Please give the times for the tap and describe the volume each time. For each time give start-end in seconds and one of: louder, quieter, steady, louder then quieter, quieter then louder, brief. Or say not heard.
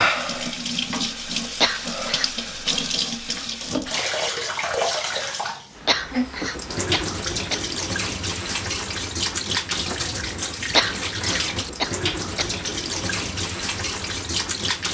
0.0-14.8 steady.